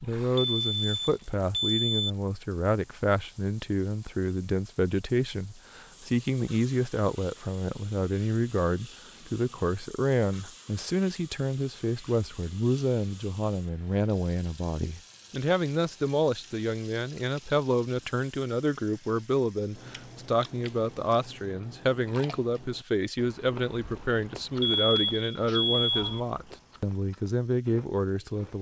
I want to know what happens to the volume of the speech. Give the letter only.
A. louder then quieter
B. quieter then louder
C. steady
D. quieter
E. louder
C.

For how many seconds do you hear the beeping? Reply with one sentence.
The beeping can be heard for 3 seconds in total.